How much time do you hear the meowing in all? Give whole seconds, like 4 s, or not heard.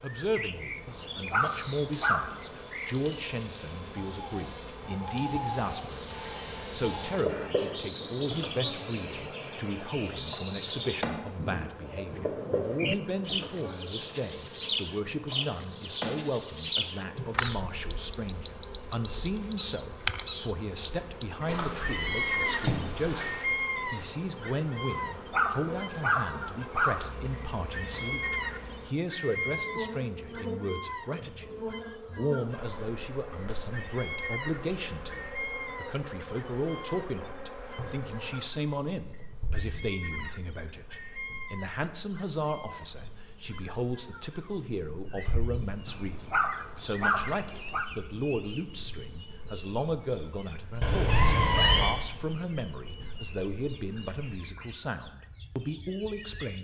3 s.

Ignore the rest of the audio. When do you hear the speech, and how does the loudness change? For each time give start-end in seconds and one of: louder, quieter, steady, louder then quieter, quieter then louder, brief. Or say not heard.
0.0-56.6 steady.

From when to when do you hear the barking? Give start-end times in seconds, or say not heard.
0.8-2.4, 24.9-27.1, 45.9-47.9.